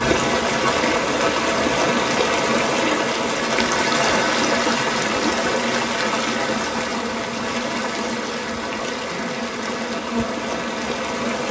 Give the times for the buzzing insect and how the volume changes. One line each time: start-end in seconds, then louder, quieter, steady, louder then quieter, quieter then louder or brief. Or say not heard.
0.0-11.4 steady.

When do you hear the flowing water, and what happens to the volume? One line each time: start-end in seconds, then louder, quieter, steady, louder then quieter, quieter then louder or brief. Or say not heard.
0.0-11.4 quieter.